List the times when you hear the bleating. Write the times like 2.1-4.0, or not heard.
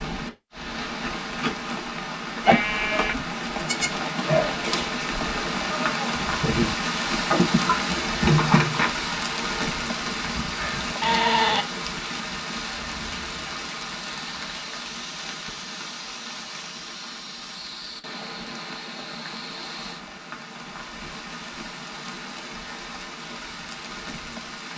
2.5-11.7.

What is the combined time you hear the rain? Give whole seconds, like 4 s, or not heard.
25 s.